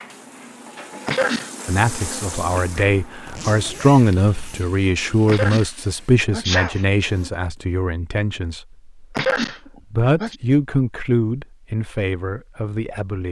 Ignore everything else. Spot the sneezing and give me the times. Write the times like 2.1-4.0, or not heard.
1.1-1.6, 5.2-5.7, 6.3-6.8, 9.2-10.3.